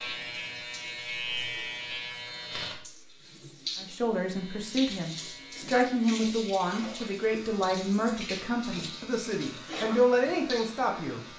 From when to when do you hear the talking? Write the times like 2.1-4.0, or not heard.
3.8-11.2.